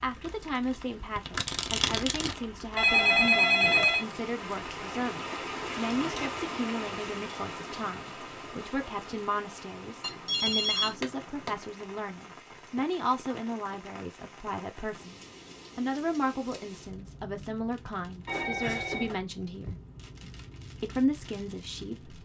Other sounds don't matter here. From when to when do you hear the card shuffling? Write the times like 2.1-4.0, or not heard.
0.2-2.4.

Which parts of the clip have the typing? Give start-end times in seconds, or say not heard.
not heard.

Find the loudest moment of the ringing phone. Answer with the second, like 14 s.
3 s.